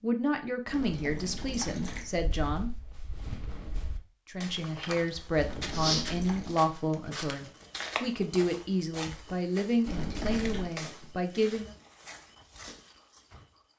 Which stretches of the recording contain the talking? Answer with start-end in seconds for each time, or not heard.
0.0-2.7, 4.2-11.7.